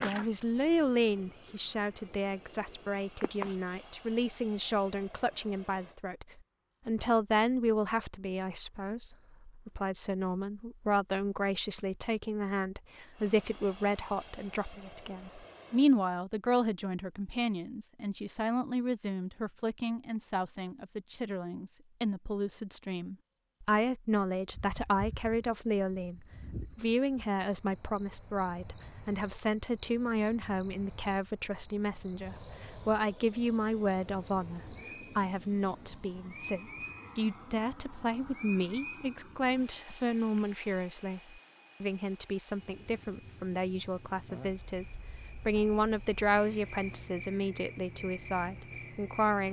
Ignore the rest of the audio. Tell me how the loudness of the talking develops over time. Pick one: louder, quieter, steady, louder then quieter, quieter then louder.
steady.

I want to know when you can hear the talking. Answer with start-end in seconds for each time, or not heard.
0.0-49.4.